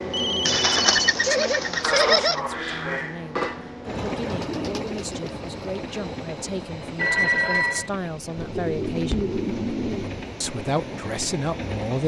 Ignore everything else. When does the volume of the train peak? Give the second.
2 s.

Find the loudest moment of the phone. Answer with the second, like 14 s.
7 s.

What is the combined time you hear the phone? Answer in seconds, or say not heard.
2 s.